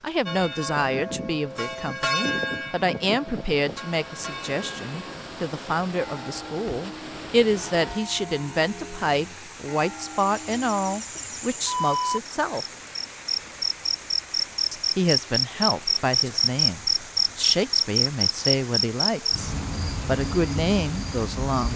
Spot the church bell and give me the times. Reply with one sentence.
The church bell can be heard from 0.2 to 11.2 s.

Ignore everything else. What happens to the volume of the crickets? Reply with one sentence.
The loudness of the crickets goes up, then down.